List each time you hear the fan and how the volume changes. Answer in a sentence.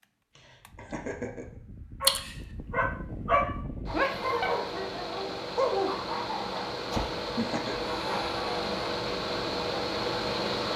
You can hear the fan from 0.0 to 10.7 s, getting louder.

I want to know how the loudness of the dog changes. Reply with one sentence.
The volume of the dog goes down.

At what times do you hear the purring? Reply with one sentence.
You can't hear the purring here.